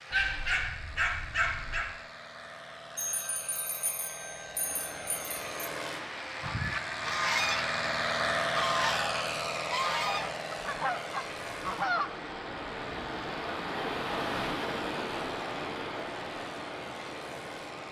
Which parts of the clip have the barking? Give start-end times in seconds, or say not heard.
0.1-1.9.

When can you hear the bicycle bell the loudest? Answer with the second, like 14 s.
3 s.